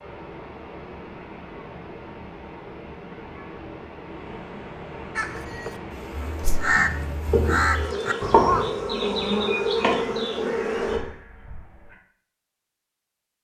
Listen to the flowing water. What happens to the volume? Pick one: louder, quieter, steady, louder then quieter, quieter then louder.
steady.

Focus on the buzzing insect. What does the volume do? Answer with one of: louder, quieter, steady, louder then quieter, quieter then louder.
louder.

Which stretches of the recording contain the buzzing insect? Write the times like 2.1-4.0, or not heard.
5.9-11.0.